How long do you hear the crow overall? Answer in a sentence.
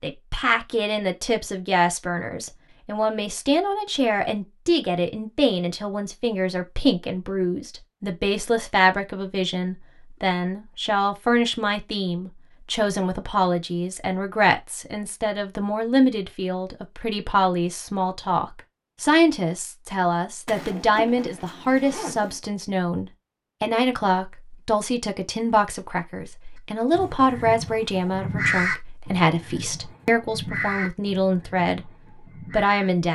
You can hear the crow for 6 seconds altogether.